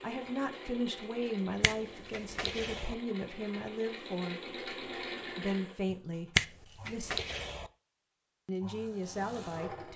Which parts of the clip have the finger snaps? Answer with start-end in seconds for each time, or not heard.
1.6-3.0, 6.3-7.7.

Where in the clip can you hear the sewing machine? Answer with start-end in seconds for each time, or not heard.
0.0-6.9, 8.4-9.9.